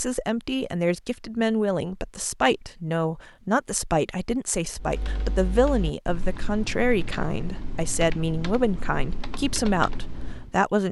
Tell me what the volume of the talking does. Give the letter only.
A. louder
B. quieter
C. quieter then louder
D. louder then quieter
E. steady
E.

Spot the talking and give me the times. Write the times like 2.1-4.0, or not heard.
0.0-10.8.